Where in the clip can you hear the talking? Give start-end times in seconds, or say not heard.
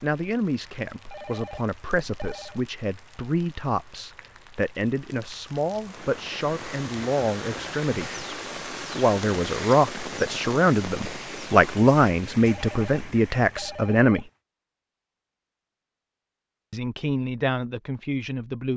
0.0-8.2, 8.9-14.2, 16.7-18.7.